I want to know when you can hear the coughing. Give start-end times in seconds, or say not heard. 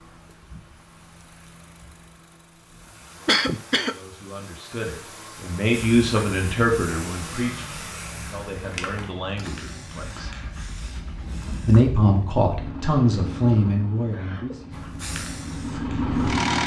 3.2-4.0, 14.1-14.7.